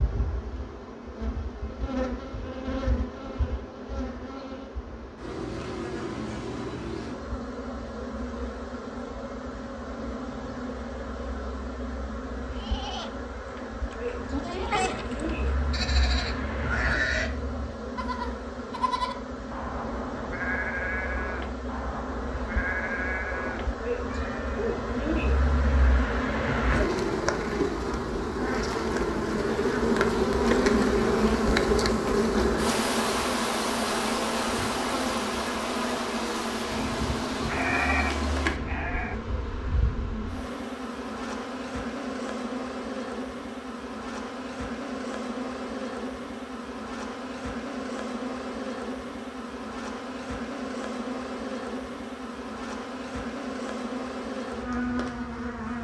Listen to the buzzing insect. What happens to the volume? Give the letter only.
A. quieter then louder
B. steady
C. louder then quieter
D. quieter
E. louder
C.